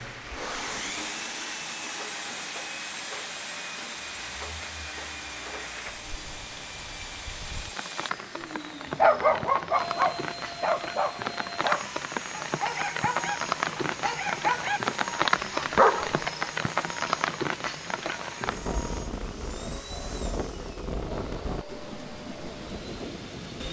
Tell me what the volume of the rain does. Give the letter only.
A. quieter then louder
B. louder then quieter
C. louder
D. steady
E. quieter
B.